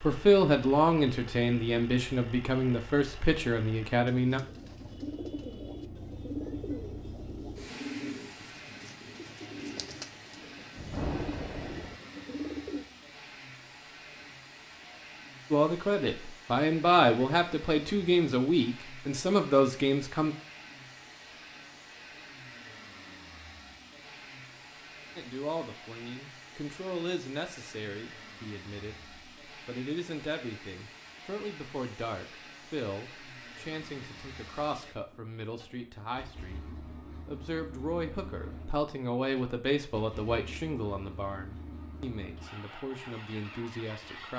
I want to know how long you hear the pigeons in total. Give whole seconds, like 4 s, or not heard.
9 s.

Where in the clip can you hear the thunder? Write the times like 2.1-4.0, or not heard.
10.8-12.0.